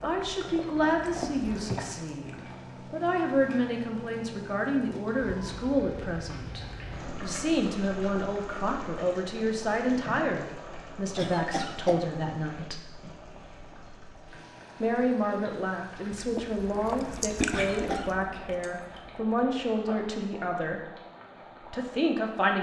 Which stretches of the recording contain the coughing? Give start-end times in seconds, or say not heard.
0.5-1.9, 11.2-12.1, 17.5-18.1.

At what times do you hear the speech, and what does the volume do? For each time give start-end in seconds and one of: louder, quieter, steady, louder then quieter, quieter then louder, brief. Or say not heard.
0.0-12.9 steady
14.8-20.9 steady
21.7-22.5 brief.